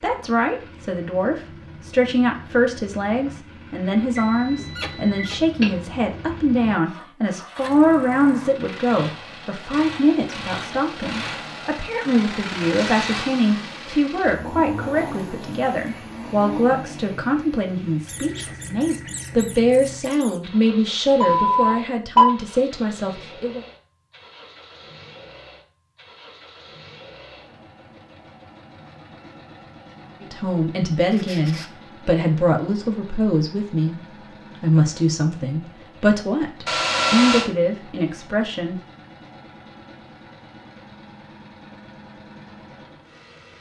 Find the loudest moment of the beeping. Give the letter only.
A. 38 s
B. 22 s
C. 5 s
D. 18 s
B.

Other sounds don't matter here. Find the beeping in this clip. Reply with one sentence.
You can hear the beeping from 4.2 to 5.7 s, from 21.2 to 22.2 s and from 36.6 to 37.5 s.